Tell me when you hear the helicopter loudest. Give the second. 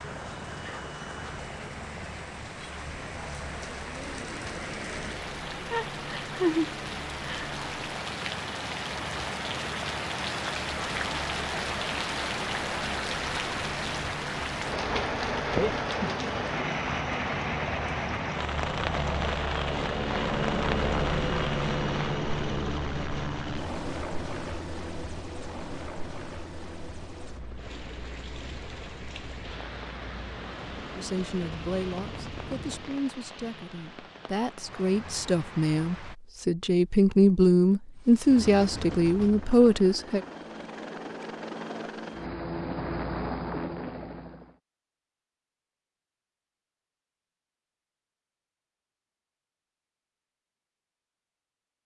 21 s.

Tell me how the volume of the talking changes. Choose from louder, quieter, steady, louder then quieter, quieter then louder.
louder.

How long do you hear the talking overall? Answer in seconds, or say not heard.
9 s.